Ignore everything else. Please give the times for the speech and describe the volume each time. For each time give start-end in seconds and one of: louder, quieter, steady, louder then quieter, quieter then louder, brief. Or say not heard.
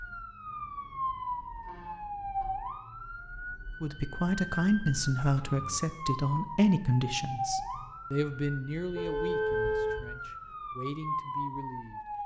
3.8-12.0 quieter.